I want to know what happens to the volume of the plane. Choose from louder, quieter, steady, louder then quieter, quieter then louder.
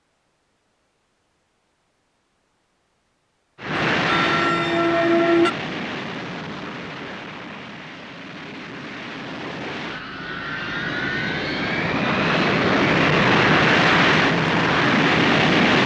quieter then louder.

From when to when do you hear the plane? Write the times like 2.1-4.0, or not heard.
3.6-15.8.